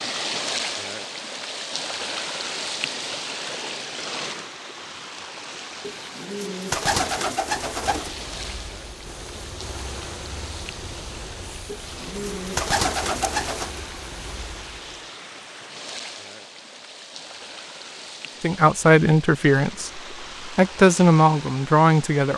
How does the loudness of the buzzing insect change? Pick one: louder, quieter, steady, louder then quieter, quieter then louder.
steady.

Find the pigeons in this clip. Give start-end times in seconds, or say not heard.
5.8-8.2, 11.7-13.7.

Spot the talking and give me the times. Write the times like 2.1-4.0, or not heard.
18.4-22.3.